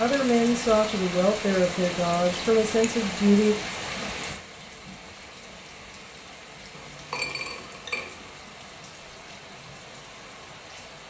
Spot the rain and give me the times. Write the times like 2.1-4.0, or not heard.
0.0-11.0.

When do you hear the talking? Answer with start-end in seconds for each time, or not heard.
0.0-3.5.